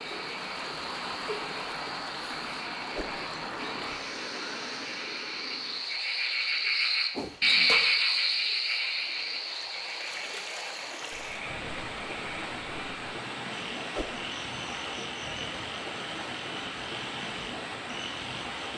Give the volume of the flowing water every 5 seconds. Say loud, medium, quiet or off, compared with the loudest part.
loud, medium, loud, loud.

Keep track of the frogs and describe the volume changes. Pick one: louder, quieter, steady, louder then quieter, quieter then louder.
louder then quieter.